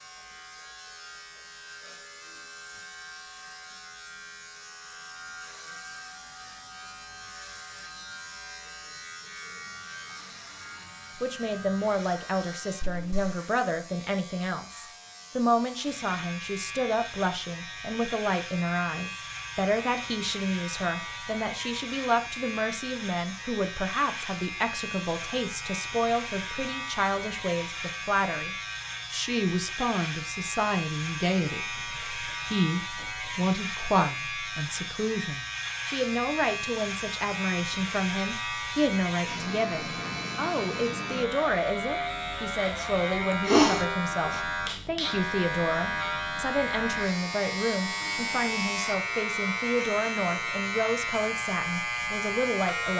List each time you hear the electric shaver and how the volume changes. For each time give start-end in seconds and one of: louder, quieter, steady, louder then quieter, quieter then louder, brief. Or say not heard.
0.0-52.9 louder.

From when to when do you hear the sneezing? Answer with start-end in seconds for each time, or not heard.
43.3-44.4.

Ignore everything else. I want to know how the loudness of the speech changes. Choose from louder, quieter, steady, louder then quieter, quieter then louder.
steady.